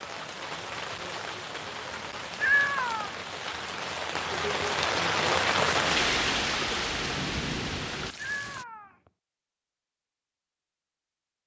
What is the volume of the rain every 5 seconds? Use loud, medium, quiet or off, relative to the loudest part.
medium, loud, off.